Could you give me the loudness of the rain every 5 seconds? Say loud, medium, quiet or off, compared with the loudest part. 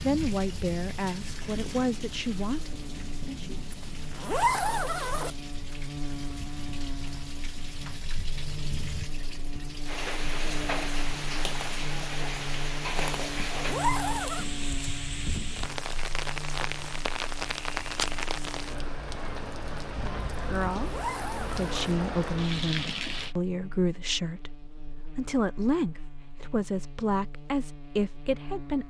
medium, medium, loud, loud, loud, off.